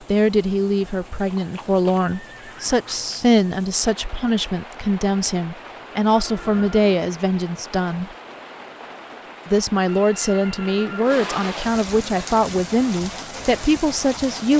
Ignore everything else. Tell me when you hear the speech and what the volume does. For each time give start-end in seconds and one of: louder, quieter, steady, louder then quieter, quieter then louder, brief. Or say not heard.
0.1-8.1 steady
9.4-14.5 steady.